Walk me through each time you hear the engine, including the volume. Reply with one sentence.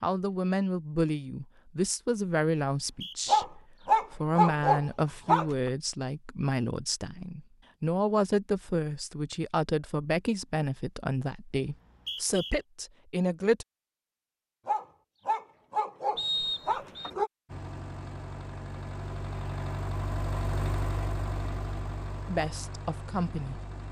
The engine can be heard from 17.4 to 23.8 s, getting louder then quieter.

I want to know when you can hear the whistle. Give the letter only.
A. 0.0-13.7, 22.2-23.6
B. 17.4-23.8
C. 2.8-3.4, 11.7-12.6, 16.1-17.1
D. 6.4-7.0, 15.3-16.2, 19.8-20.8
C.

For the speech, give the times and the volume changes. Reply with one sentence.
You can hear the speech from 0.0 to 13.7 s, at a steady volume; and briefly from 22.2 to 23.6 s.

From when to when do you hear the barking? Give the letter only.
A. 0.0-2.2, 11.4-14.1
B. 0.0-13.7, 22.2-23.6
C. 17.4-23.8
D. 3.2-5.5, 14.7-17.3
D.